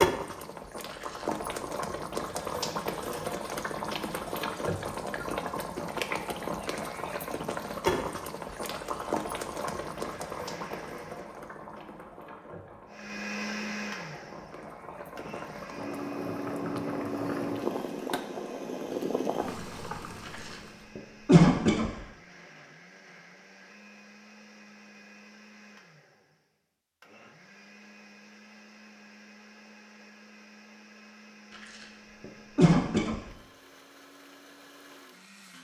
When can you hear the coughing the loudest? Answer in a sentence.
The volume of the coughing peaks at 21 seconds.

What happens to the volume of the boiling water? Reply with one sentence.
The loudness of the boiling water goes down, then up.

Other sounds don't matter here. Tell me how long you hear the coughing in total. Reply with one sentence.
The coughing can be heard for 4 seconds in total.